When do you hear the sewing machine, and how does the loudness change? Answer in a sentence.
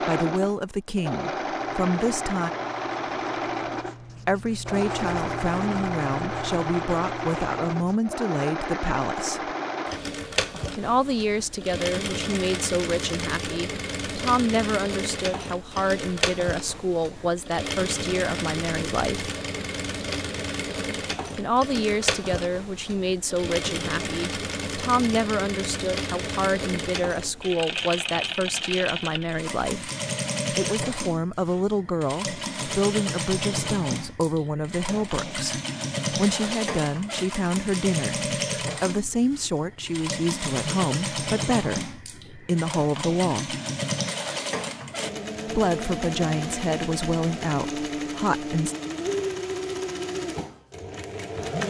The sewing machine can be heard from 0.0 to 51.6 s, at a steady volume.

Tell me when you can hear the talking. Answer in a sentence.
You can hear the talking from 0.1 to 2.5 s, from 4.2 to 9.5 s, from 10.8 to 19.3 s, from 21.4 to 29.9 s, from 30.5 to 43.5 s and from 45.5 to 48.8 s.